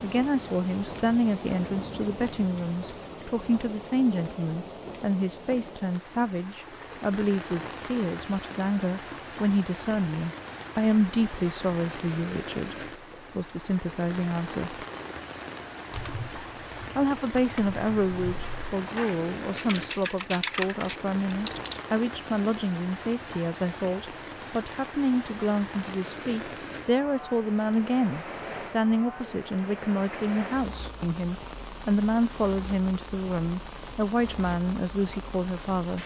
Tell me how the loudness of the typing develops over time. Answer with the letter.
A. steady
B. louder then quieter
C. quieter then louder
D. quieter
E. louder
E.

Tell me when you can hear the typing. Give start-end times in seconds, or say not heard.
15.9-21.8.